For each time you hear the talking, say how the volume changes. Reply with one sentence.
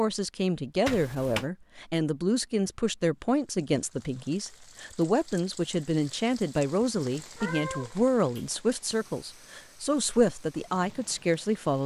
You can hear the talking from 0.0 to 11.8 s, at a steady volume.